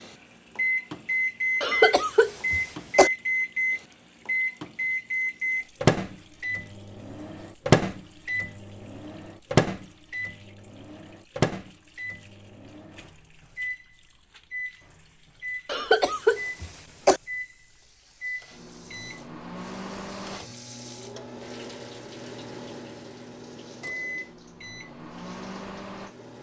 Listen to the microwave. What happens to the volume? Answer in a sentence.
The loudness of the microwave goes down.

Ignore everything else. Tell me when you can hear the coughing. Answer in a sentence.
The coughing can be heard from 1.6 to 3.1 s and from 15.7 to 17.2 s.